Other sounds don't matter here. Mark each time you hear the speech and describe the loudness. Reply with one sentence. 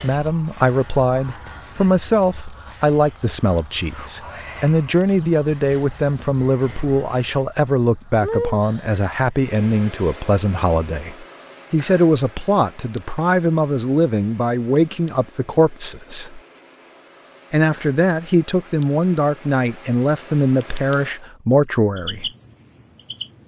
You can hear the speech from 0.0 to 16.4 s, at a steady volume; and from 17.5 to 22.3 s, at a steady volume.